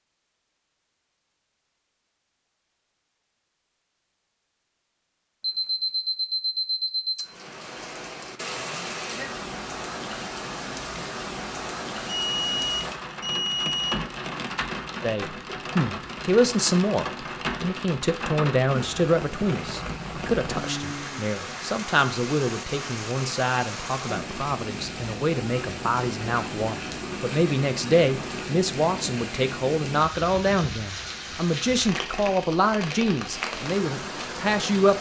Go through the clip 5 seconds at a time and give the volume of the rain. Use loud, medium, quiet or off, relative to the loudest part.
off, loud, loud, loud, loud, loud, loud.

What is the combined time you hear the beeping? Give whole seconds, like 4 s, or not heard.
5 s.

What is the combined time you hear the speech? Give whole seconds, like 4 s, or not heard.
20 s.